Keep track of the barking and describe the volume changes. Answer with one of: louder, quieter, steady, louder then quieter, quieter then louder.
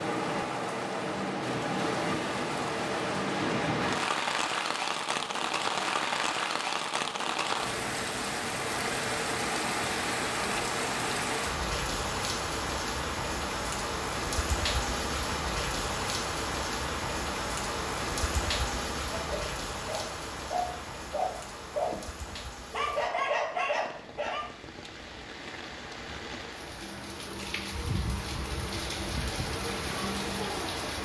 louder.